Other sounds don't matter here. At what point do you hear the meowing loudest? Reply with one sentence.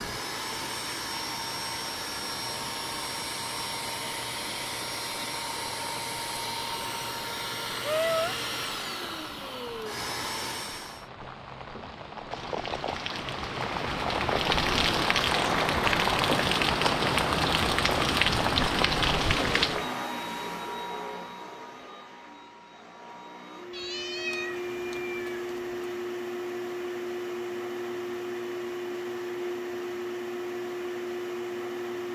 The volume of the meowing peaks at 8 seconds.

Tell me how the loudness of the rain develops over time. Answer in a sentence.
The loudness of the rain goes up.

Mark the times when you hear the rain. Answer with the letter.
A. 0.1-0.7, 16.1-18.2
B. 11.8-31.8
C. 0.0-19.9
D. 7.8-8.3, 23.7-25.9
C.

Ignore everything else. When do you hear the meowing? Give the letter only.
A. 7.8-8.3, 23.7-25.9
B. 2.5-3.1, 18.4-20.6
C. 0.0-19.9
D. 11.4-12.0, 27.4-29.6
A.